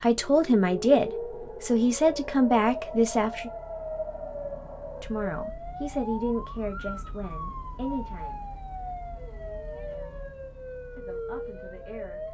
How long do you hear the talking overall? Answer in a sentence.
You can hear the talking for 8 seconds altogether.